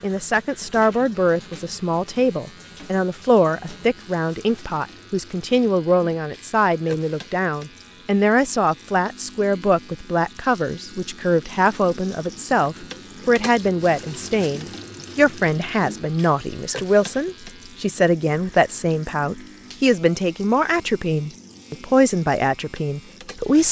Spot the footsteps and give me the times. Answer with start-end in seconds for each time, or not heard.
not heard.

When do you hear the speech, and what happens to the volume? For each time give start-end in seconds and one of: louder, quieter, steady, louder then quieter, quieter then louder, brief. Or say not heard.
0.0-23.6 steady.